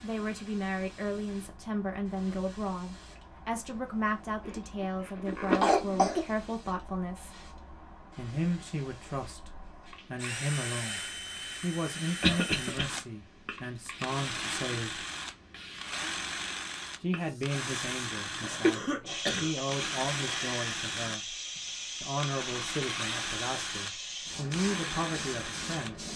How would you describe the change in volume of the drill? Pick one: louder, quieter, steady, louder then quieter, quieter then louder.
steady.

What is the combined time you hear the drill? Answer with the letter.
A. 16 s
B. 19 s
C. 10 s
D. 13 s
A.